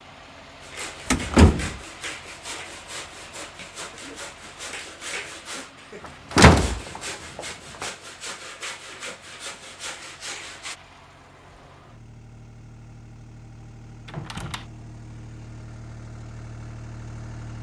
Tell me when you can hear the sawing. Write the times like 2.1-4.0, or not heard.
0.6-10.8.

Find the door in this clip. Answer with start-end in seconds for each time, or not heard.
1.1-1.8, 6.3-7.9, 14.1-14.7.